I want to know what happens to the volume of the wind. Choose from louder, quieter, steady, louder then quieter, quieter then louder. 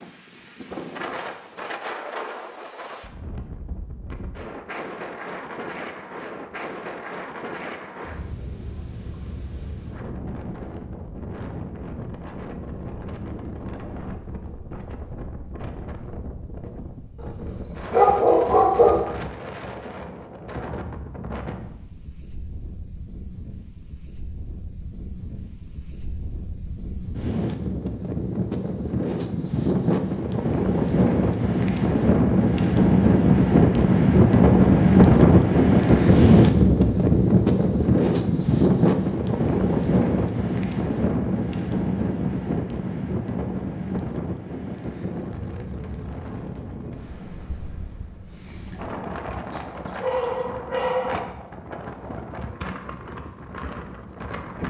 louder then quieter.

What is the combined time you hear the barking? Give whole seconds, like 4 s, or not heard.
3 s.